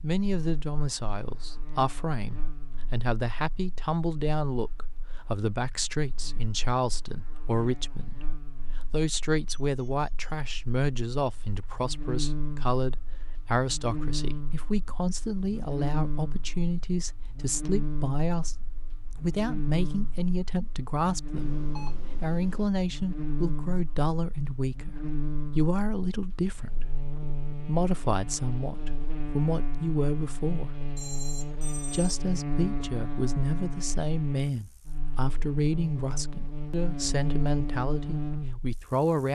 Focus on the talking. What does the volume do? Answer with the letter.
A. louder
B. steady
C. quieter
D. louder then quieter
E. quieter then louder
B.